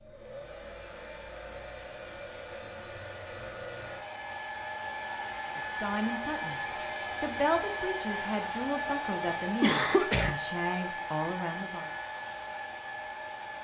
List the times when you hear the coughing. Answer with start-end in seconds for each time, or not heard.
9.2-10.3.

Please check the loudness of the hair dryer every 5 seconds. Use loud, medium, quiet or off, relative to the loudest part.
medium, loud, loud.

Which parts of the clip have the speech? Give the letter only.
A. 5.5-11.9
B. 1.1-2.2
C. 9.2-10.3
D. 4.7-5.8
A.